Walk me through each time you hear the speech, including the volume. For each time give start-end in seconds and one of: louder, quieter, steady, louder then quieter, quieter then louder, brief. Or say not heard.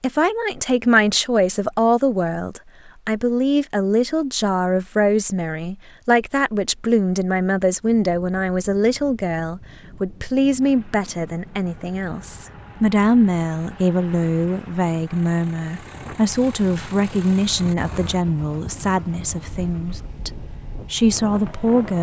0.0-21.9 steady.